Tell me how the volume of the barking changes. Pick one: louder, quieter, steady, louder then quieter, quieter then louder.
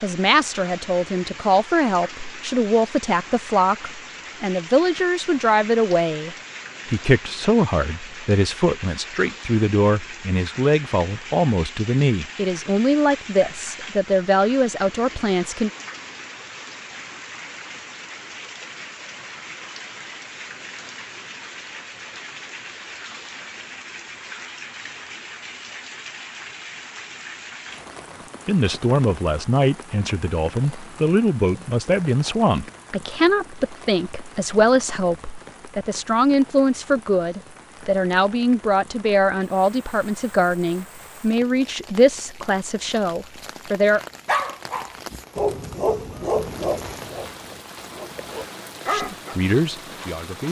quieter then louder.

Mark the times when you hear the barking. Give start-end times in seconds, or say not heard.
43.9-49.4.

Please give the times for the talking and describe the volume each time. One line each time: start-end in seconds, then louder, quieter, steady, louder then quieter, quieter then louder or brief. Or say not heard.
0.0-15.7 steady
28.4-44.0 steady
48.9-50.4 brief.